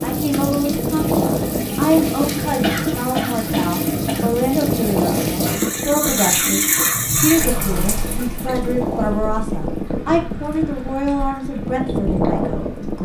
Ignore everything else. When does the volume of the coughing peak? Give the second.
3 s.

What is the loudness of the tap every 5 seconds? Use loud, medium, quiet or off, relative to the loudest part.
loud, loud, quiet.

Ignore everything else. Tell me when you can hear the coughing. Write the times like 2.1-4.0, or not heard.
2.5-4.3.